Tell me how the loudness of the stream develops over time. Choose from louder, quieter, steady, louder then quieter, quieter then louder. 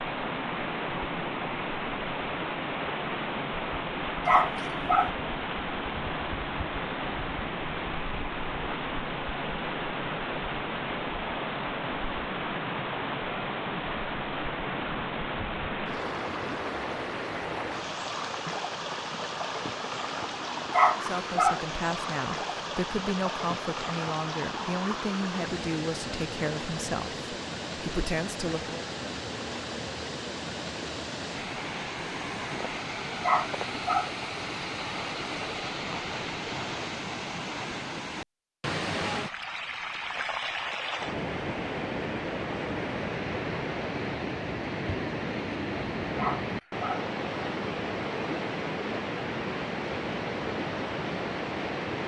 steady.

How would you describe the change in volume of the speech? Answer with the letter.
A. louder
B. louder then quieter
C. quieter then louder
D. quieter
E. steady
E.